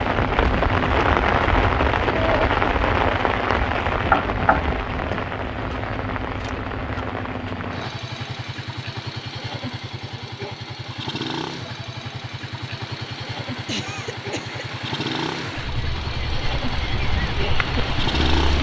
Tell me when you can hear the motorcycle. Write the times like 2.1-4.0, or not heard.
0.0-18.5.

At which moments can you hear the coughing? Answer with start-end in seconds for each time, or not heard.
13.7-14.6.